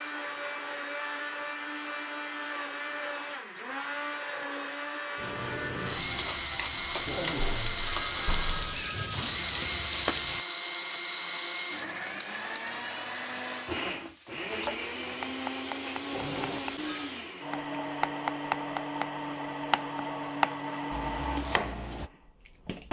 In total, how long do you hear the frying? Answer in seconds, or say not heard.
5 s.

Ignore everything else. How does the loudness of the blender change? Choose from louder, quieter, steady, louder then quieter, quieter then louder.
steady.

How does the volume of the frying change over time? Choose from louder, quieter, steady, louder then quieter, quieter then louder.
steady.